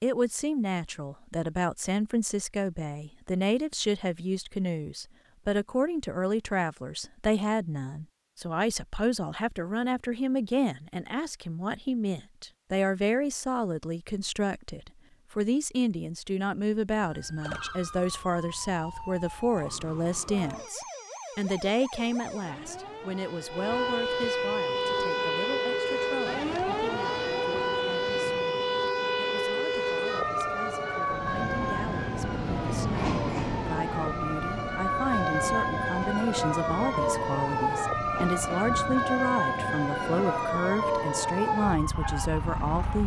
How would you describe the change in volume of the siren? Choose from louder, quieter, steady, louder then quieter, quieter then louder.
louder.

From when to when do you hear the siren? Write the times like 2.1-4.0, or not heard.
17.0-43.0.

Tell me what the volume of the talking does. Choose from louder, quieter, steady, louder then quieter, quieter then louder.
quieter then louder.